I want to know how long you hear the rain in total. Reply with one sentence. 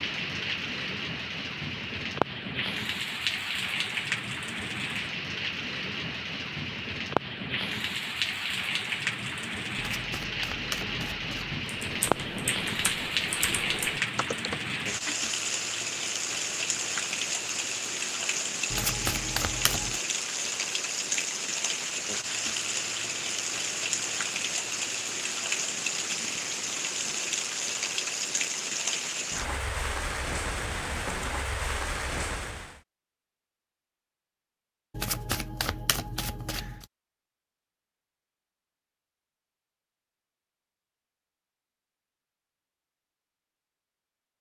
You can hear the rain for 33 seconds altogether.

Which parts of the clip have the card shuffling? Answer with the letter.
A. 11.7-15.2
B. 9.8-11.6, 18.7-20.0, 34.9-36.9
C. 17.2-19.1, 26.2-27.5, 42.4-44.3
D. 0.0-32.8
B.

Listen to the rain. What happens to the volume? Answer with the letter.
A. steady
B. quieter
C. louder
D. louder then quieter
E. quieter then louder
A.